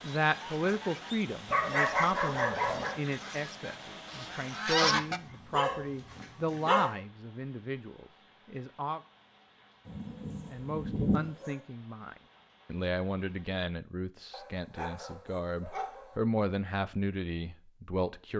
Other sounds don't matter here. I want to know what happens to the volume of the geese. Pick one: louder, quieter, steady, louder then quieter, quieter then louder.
louder.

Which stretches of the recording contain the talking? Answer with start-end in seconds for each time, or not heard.
0.0-9.0, 10.5-18.3.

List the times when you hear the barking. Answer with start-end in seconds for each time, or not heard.
1.5-3.0, 4.8-7.0, 9.8-11.6, 14.3-16.1.